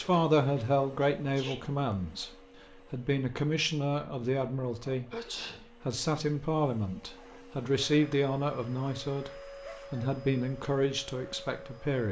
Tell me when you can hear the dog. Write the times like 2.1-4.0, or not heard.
not heard.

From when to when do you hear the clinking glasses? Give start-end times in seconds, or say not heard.
not heard.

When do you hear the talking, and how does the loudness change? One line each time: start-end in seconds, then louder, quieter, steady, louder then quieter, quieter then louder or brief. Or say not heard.
0.0-12.0 steady.